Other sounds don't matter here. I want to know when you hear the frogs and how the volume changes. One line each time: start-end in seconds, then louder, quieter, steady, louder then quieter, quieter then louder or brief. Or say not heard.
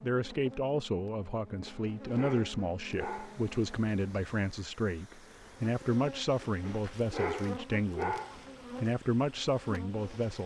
not heard.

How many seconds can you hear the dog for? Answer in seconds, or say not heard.
4 s.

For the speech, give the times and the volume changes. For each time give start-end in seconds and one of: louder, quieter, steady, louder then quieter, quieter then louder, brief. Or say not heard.
0.0-8.2 steady
8.8-10.4 brief.